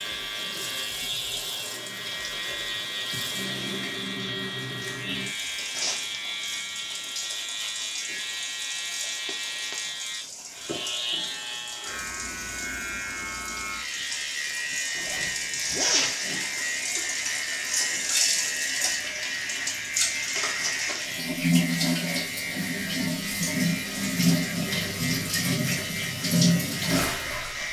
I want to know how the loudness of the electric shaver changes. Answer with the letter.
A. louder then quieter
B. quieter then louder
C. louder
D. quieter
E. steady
E.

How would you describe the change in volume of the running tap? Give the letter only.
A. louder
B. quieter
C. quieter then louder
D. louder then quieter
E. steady
A.